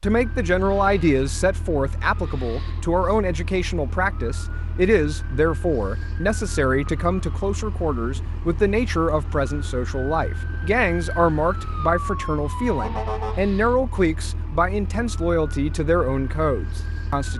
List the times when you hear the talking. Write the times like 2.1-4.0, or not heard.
0.0-17.3.